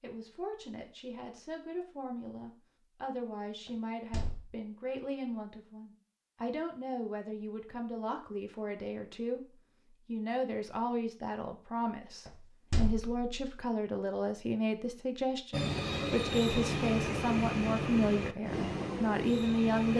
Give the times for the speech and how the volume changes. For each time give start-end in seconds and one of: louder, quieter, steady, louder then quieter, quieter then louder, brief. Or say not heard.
0.0-19.9 louder.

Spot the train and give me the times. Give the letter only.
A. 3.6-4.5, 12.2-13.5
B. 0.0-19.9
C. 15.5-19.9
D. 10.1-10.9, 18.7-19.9
C.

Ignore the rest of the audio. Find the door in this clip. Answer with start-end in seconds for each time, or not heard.
3.6-4.5, 12.2-13.5.